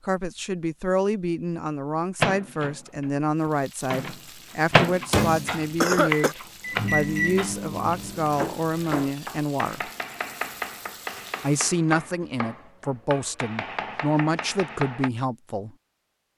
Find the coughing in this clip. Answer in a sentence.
The coughing can be heard from 5.2 to 6.3 s.